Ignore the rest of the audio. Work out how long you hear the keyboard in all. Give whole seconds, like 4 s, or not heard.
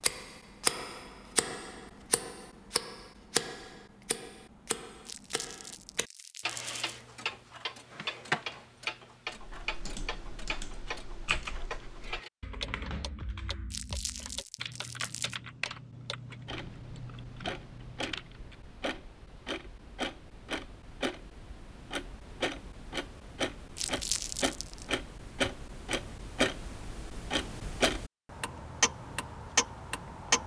9 s.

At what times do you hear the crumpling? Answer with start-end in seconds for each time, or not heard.
5.0-6.8, 13.7-15.4, 23.8-24.9.